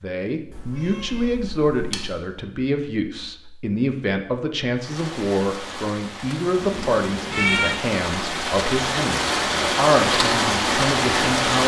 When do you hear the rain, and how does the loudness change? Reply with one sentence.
You can hear the rain from 4.8 to 11.6 s, getting louder.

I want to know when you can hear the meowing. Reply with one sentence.
The meowing can be heard from 0.6 to 2.1 s and from 6.5 to 7.8 s.